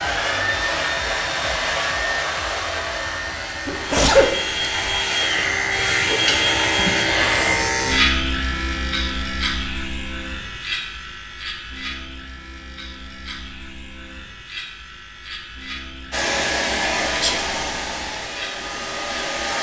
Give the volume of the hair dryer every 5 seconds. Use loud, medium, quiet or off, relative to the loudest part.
loud, loud, off, loud.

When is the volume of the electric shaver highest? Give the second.
8 s.